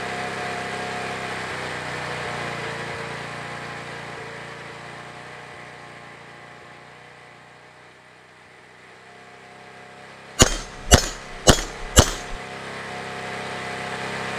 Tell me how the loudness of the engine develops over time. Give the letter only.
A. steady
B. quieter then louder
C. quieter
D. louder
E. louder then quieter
B.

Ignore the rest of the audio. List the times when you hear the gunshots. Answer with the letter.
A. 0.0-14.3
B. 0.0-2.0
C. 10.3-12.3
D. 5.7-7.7
C.